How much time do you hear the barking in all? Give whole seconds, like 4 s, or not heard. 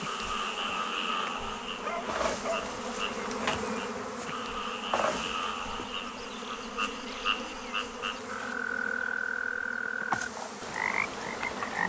2 s.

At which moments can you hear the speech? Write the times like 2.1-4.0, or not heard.
not heard.